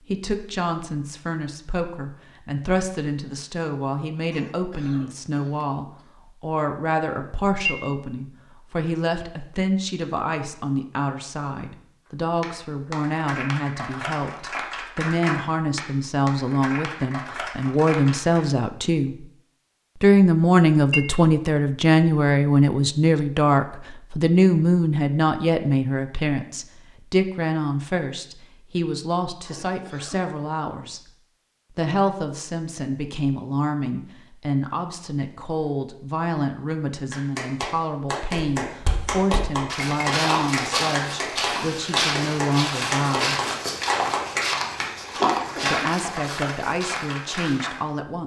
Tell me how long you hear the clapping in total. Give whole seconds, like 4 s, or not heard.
17 s.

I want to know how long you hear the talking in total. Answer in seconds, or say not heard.
45 s.